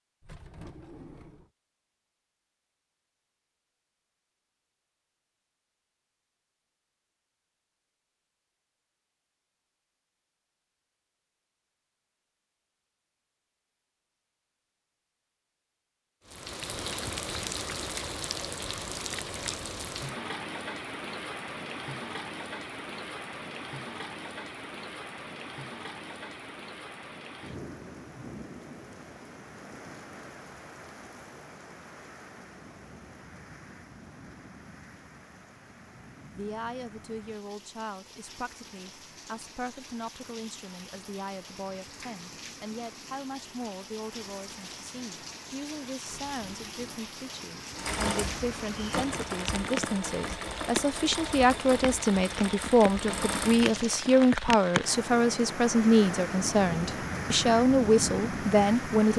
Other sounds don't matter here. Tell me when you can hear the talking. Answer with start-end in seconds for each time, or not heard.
36.3-59.1.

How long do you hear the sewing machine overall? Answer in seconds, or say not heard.
6 s.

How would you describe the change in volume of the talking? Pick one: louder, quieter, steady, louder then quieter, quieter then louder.
louder.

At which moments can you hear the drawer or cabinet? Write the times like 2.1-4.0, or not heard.
0.2-1.5, 46.0-47.0.